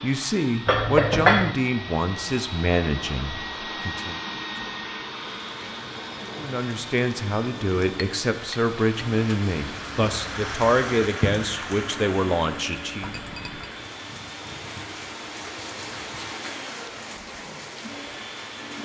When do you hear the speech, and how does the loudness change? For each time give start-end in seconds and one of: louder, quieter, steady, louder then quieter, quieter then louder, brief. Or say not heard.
0.0-4.2 quieter
6.3-13.2 steady.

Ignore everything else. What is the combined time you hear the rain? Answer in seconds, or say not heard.
14 s.